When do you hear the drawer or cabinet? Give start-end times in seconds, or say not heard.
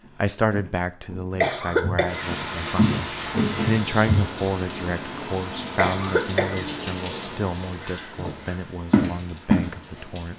not heard.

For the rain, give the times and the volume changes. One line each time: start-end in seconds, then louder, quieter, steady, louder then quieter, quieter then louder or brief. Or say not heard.
2.0-10.3 quieter.